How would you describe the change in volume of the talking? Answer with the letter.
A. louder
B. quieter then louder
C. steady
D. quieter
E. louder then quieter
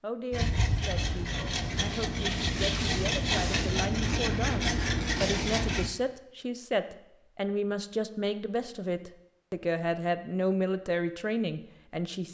A.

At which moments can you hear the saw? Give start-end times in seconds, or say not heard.
0.3-5.9.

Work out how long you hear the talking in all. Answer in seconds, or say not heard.
12 s.